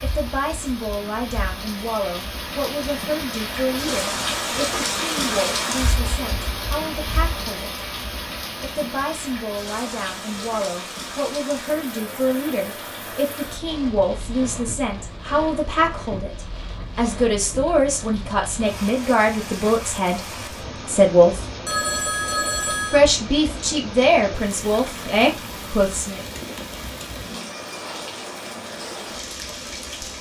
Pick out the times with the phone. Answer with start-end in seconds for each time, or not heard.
21.6-23.0.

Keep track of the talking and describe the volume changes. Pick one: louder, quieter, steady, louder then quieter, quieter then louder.
louder.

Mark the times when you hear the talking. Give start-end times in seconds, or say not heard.
0.0-7.8, 8.6-21.4, 22.9-26.2.